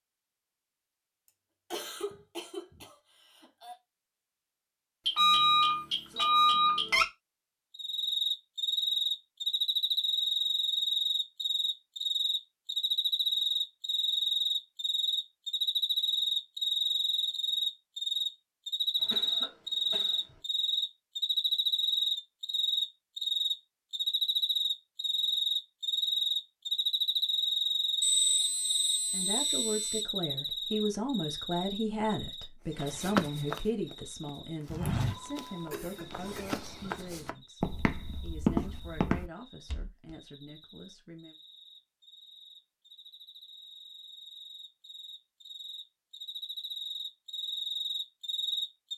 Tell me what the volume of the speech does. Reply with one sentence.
The loudness of the speech goes down.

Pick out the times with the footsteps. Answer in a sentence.
The footsteps can be heard from 32.8 to 40.1 s.